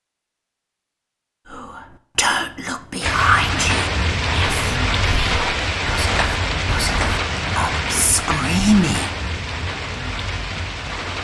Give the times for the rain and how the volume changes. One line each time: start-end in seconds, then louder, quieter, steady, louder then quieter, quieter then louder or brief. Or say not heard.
3.0-11.2 quieter.